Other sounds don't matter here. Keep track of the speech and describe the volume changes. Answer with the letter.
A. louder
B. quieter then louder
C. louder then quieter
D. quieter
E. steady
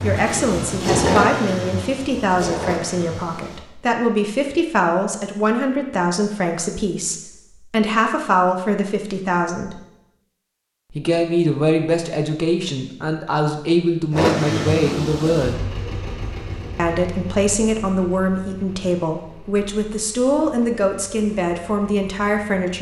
E.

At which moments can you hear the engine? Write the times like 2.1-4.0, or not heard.
0.0-3.6, 14.1-22.6.